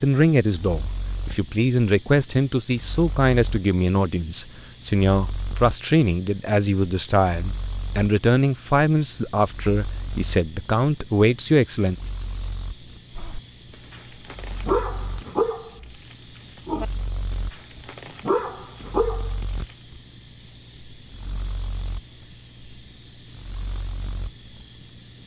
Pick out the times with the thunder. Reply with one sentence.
The thunder can't be heard in this clip.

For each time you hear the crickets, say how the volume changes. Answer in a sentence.
You can hear the crickets from 0.0 to 25.2 s, at a steady volume.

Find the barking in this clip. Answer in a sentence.
You can hear the barking from 13.2 to 16.9 s and from 17.5 to 19.3 s.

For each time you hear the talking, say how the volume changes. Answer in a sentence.
You can hear the talking from 0.0 to 11.9 s, at a steady volume.